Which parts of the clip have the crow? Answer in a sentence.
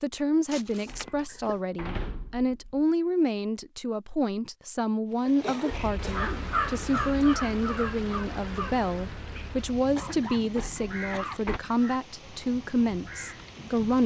The crow can be heard from 5.7 to 13.6 s.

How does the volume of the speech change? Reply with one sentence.
The loudness of the speech stays about the same.